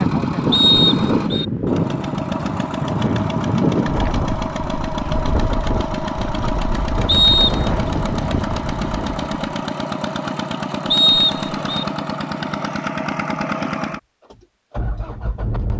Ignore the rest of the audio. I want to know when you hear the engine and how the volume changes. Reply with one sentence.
You can hear the engine from 0.0 to 15.7 s, at a steady volume.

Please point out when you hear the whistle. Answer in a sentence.
You can hear the whistle from 0.5 to 1.4 s, from 7.0 to 7.7 s and from 10.9 to 11.8 s.